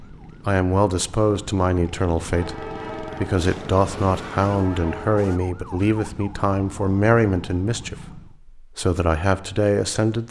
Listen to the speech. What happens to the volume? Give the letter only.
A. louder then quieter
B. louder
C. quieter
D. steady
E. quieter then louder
D.